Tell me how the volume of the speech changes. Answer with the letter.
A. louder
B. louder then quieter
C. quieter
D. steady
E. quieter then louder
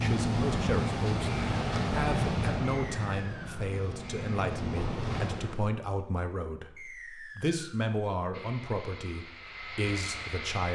D.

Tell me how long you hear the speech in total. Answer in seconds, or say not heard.
11 s.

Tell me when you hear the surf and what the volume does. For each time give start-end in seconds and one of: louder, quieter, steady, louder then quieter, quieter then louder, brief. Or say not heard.
0.0-5.7 quieter then louder.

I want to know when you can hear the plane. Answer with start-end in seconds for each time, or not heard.
8.3-10.7.